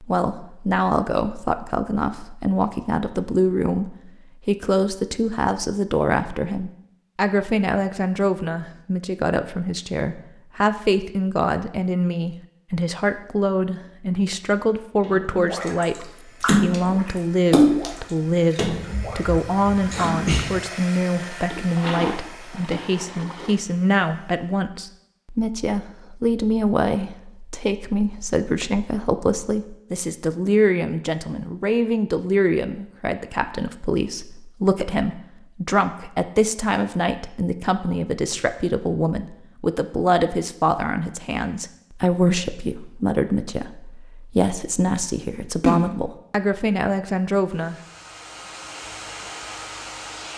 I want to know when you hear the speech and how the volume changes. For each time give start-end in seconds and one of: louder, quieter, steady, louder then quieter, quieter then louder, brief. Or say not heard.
0.0-47.8 steady.